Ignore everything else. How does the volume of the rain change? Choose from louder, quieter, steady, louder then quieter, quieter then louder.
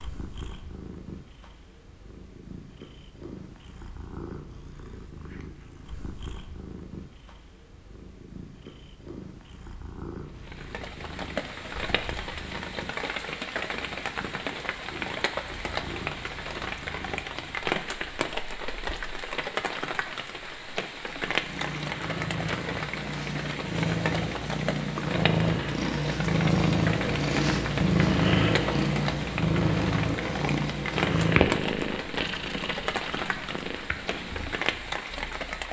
steady.